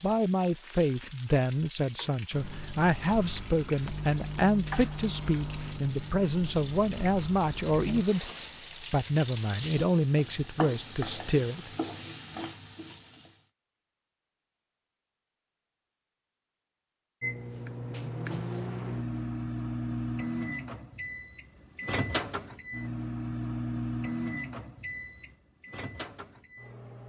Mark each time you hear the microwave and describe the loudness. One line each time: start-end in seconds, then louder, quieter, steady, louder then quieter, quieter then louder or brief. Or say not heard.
2.3-8.1 louder then quieter
17.2-27.0 quieter.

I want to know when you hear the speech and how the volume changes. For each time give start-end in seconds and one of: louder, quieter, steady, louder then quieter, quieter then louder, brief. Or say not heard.
0.0-11.7 steady.